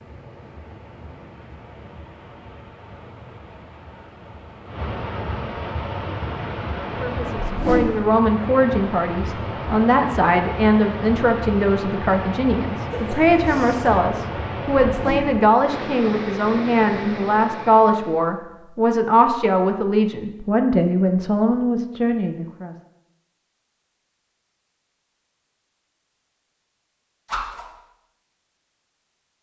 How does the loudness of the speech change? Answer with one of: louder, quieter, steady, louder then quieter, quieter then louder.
steady.